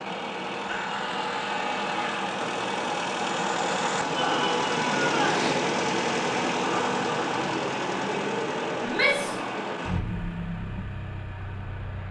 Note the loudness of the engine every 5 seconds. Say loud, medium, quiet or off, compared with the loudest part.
loud, loud, medium.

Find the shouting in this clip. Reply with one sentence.
The shouting can be heard from 0.7 to 2.2 s, from 4.1 to 5.5 s and from 8.8 to 9.4 s.